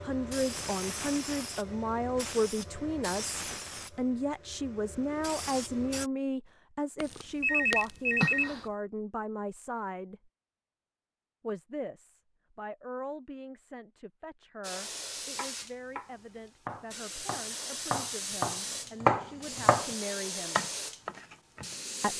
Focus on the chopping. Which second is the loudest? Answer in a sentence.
The volume of the chopping peaks at 19 seconds.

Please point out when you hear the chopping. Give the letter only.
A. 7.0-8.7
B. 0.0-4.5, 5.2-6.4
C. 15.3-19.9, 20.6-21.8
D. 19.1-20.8
C.